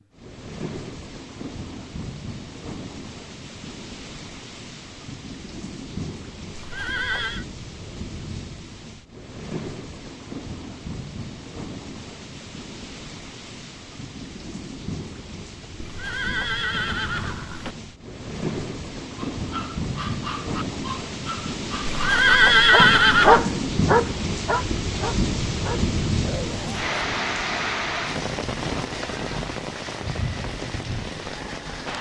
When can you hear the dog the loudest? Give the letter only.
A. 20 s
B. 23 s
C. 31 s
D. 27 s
B.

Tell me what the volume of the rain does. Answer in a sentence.
The volume of the rain goes up.